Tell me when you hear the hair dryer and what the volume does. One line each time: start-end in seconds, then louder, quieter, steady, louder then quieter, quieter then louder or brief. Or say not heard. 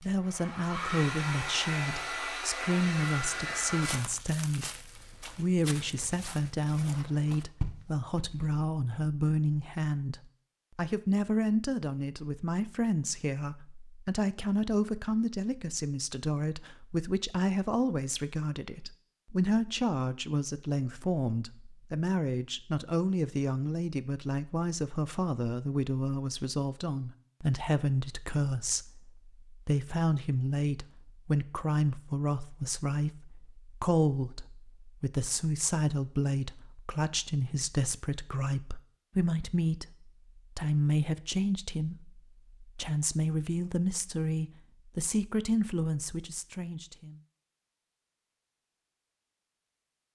0.0-4.0 steady.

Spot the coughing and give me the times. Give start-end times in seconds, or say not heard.
not heard.